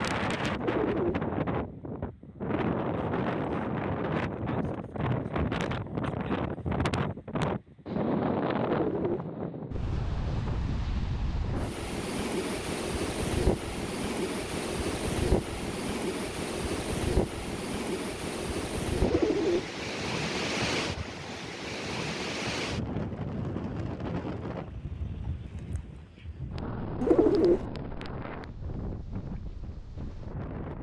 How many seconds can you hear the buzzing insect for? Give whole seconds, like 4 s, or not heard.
not heard.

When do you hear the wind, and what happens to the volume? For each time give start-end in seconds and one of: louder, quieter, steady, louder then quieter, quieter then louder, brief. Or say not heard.
0.0-30.7 quieter.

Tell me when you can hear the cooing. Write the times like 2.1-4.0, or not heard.
0.6-1.2, 8.6-9.2, 19.0-19.7, 27.0-27.6.